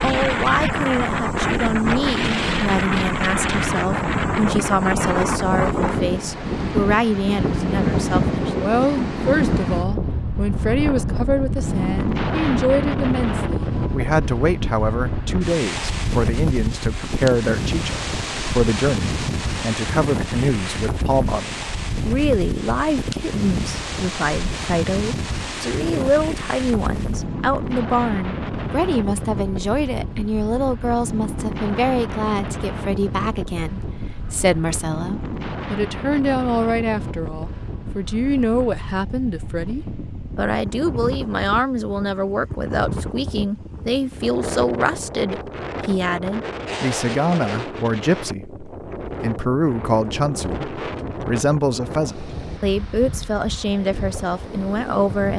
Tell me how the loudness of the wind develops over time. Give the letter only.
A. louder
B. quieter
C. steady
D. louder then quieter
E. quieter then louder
B.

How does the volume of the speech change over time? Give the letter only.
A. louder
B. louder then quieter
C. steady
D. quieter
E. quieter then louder
C.